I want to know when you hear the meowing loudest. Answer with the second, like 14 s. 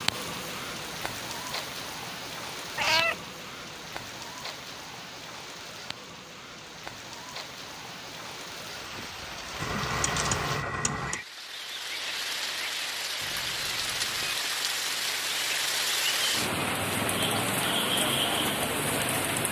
3 s.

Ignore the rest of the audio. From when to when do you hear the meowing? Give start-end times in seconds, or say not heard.
2.8-3.2, 9.6-11.2, 13.2-14.4.